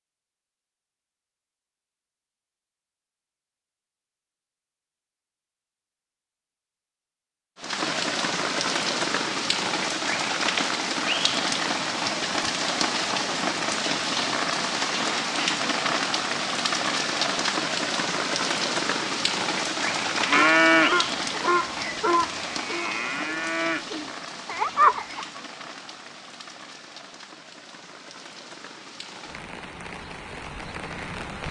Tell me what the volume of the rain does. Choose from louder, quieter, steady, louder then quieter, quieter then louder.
quieter.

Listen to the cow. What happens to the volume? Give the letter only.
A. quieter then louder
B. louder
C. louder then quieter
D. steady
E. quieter
A.